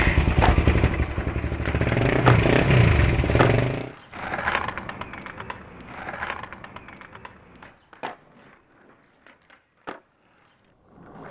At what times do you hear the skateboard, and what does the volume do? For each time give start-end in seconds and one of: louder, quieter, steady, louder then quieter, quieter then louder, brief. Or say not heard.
0.0-11.2 quieter.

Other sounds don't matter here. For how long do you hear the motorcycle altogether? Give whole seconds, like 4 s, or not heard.
4 s.